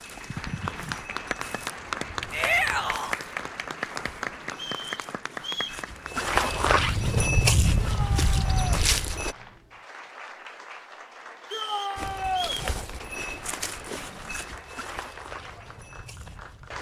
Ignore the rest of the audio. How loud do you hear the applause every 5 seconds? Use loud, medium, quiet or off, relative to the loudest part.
loud, medium, medium, medium.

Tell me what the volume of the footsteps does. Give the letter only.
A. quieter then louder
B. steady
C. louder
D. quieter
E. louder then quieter
E.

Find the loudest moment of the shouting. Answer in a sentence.
The volume of the shouting peaks at 3 seconds.